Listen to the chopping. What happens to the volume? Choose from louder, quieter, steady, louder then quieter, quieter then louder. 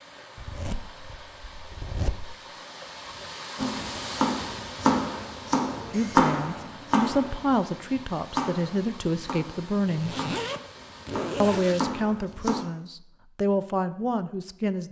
quieter then louder.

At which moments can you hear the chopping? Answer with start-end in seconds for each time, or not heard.
3.5-12.7.